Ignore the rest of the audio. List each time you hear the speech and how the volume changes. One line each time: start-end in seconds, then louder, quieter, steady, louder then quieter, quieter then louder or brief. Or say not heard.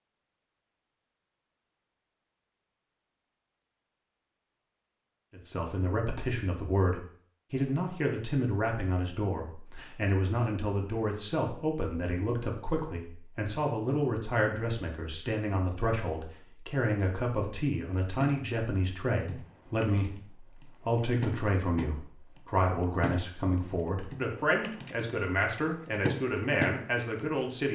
5.3-27.7 steady.